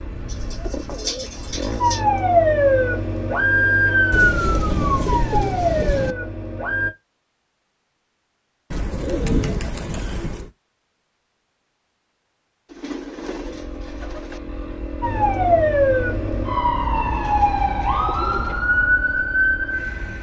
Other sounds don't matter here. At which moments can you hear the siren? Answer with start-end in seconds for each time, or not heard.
1.8-6.9, 15.0-20.1.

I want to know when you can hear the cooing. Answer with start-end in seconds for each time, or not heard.
0.2-2.0, 4.1-6.2, 8.7-10.5, 12.7-14.4, 17.1-18.6.